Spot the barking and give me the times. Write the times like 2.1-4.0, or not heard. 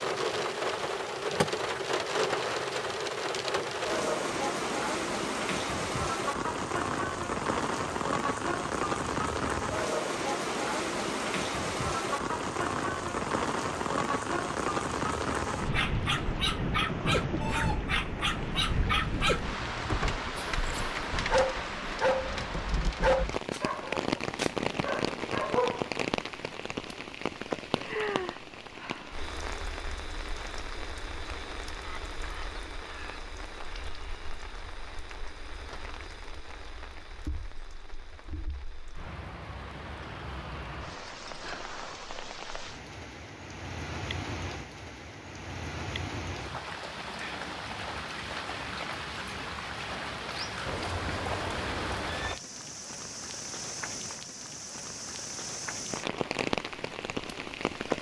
15.6-25.9.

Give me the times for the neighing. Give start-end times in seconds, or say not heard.
50.6-52.4.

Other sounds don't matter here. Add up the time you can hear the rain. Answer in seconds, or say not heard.
58 s.